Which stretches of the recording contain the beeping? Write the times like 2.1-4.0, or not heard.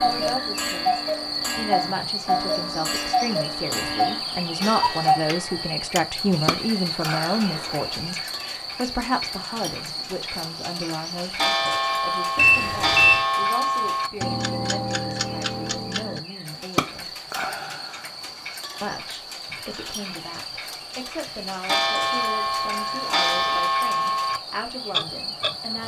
12.3-13.2.